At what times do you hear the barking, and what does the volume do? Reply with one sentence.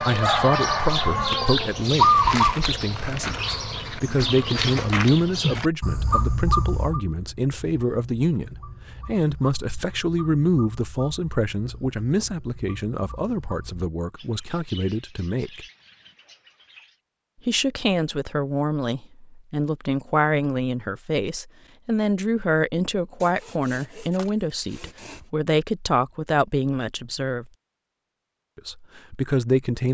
The barking can't be heard in this clip.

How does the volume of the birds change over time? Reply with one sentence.
The volume of the birds goes down.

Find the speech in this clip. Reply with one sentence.
The speech can be heard from 0.0 to 15.7 s, from 17.4 to 27.4 s and from 28.6 to 29.9 s.